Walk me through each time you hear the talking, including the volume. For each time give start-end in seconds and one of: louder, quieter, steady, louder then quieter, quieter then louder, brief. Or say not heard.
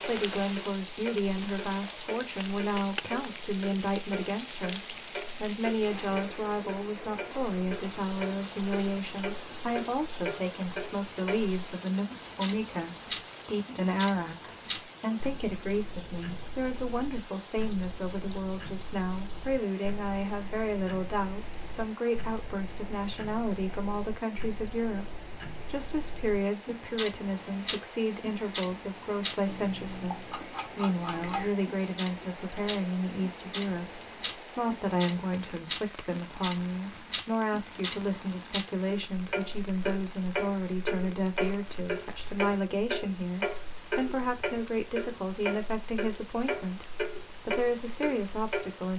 0.1-48.9 steady.